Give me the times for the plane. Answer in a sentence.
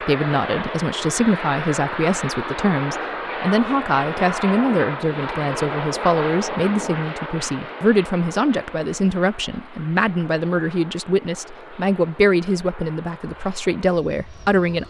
The plane can be heard from 0.0 to 14.8 s.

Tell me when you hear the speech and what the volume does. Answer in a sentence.
You can hear the speech from 0.0 to 14.8 s, at a steady volume.